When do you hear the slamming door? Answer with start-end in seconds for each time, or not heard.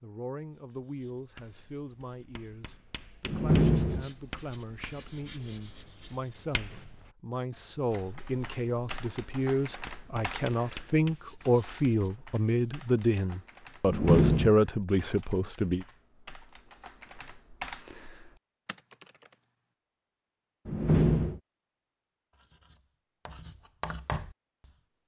3.2-4.0, 13.8-14.5, 20.6-21.4.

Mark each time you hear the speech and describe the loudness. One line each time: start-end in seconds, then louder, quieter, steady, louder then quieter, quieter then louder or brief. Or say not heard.
0.0-15.8 louder.